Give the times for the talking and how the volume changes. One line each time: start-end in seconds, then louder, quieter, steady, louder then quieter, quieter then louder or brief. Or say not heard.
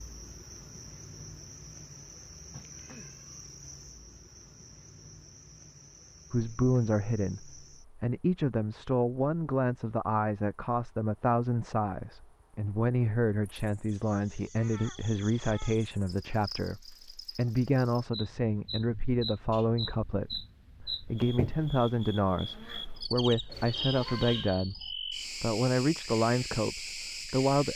6.3-27.7 steady.